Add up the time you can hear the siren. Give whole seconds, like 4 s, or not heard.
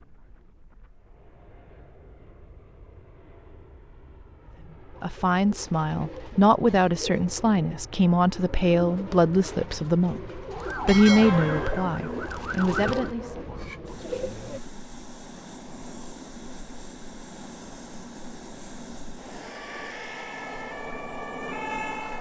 5 s.